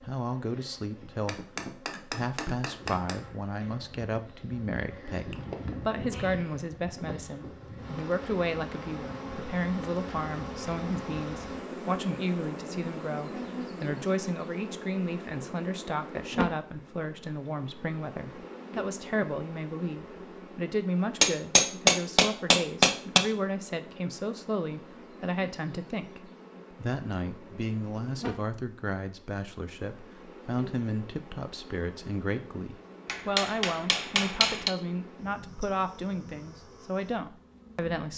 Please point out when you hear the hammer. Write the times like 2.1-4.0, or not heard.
1.2-3.2, 21.2-23.2, 33.0-34.7.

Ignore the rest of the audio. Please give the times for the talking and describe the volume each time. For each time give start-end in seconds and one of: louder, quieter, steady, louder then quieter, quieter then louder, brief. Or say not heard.
0.0-38.1 steady.